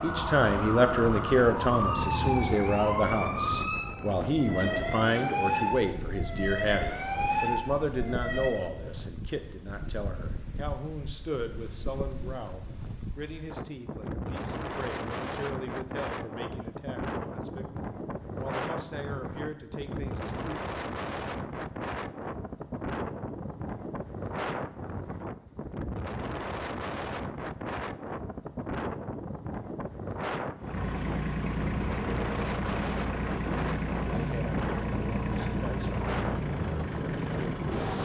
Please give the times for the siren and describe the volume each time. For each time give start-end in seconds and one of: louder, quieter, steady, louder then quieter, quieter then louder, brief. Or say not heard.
0.0-8.5 steady.